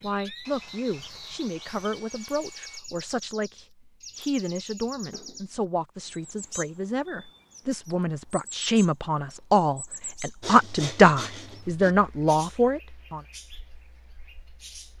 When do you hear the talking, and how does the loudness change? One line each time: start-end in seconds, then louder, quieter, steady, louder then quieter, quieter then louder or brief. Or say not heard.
0.0-13.2 louder.